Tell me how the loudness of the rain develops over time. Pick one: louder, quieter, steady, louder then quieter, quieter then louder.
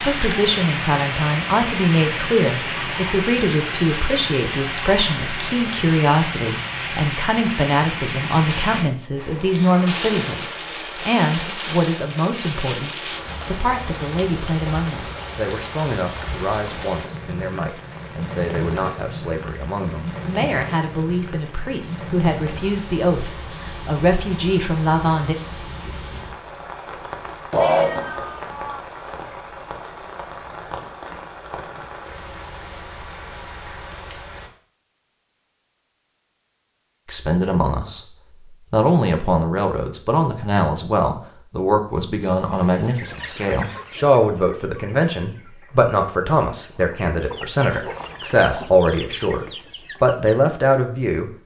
quieter.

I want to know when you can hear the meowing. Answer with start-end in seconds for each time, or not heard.
27.5-28.8.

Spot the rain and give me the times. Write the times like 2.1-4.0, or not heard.
0.0-34.5.